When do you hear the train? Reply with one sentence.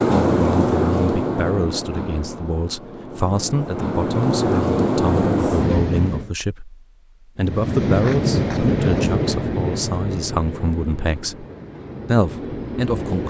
You can hear the train from 0.0 to 6.3 s and from 7.4 to 13.2 s.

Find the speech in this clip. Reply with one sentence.
You can hear the speech from 0.1 to 11.4 s and from 12.1 to 13.2 s.